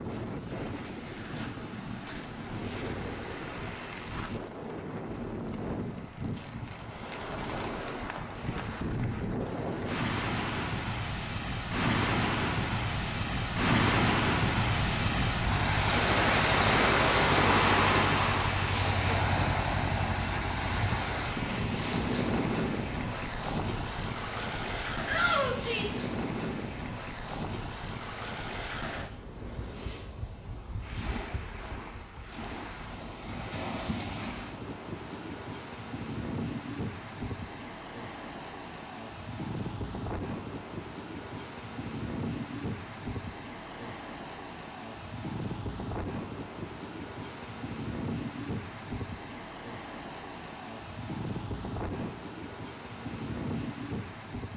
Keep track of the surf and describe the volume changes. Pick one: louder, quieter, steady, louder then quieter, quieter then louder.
louder then quieter.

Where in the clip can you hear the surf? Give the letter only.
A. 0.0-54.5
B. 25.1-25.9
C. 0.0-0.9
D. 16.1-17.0
A.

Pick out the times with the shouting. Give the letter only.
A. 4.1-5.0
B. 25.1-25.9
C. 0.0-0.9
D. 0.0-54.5
B.